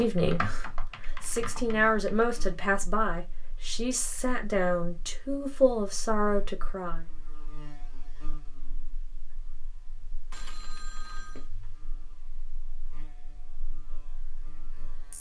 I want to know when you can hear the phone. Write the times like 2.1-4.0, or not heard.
10.3-11.5.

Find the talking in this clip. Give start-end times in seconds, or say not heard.
0.0-7.0.